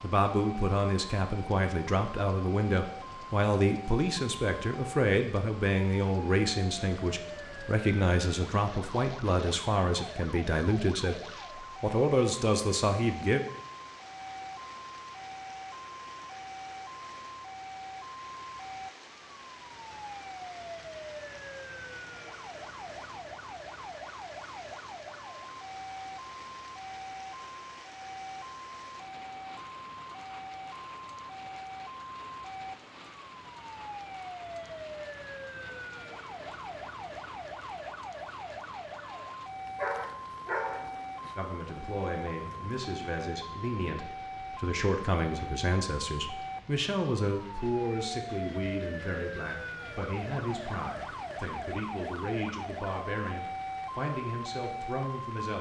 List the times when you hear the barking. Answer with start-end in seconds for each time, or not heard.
39.6-41.0.